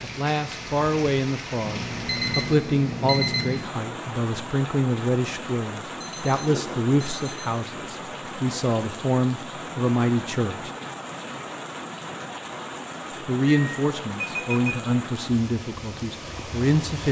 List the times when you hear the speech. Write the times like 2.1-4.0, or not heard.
0.0-10.7, 13.2-17.0.